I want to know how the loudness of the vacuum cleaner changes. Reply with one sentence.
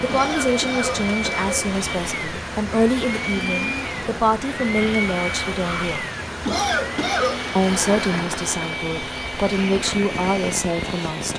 The volume of the vacuum cleaner stays about the same.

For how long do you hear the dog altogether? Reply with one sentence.
You can't hear the dog here.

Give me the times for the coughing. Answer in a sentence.
The coughing can be heard from 0.1 to 1.7 s and from 6.5 to 7.4 s.